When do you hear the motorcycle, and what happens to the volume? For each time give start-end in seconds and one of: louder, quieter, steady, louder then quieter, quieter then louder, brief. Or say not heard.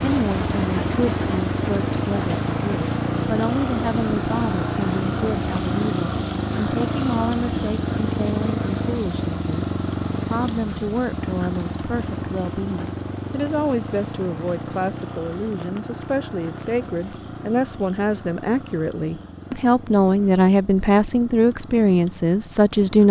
0.0-23.0 quieter.